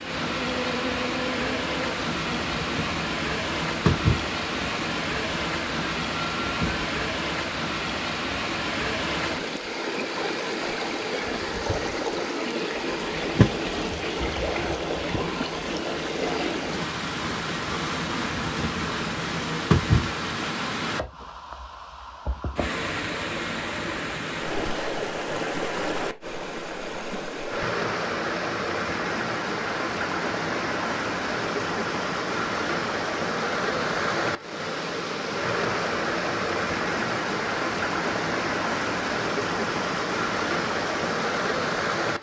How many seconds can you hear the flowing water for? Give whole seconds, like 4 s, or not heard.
42 s.